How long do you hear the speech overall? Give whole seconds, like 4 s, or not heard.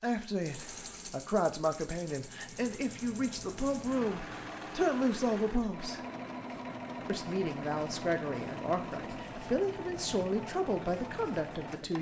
11 s.